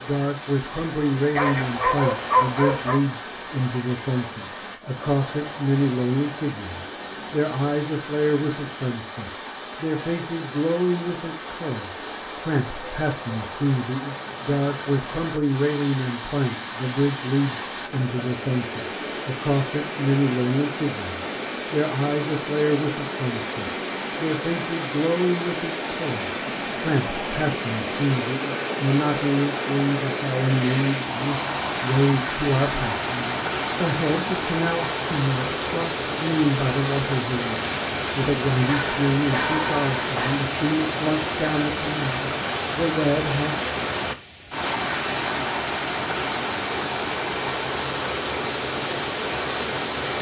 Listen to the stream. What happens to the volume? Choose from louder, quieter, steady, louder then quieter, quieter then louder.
louder.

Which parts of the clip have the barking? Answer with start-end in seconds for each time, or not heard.
1.4-3.0, 38.6-40.4.